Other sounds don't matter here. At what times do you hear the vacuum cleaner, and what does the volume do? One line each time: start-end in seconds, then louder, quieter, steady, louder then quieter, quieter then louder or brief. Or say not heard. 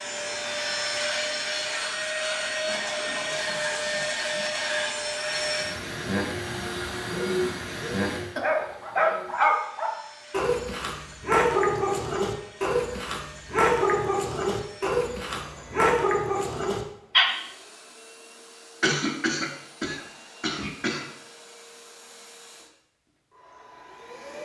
0.0-24.3 quieter.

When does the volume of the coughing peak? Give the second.
19 s.